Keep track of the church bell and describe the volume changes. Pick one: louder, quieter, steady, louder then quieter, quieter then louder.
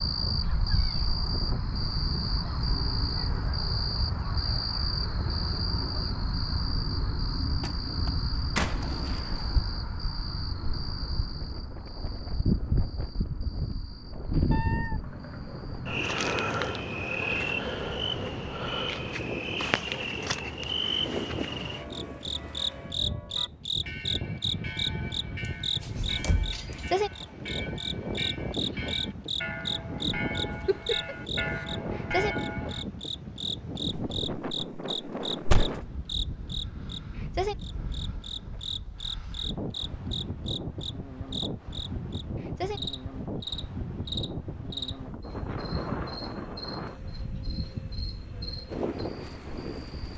louder.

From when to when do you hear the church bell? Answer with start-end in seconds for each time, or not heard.
21.4-32.9.